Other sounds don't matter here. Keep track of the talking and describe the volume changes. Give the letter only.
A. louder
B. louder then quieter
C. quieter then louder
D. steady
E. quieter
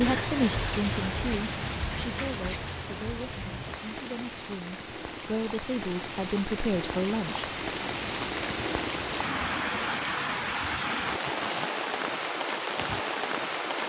C.